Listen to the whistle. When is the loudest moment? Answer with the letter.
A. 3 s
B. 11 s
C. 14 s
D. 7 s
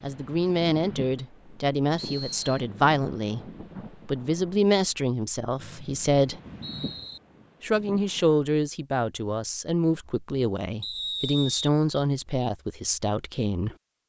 B.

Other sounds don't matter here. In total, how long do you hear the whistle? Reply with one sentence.
The whistle can be heard for 3 seconds in total.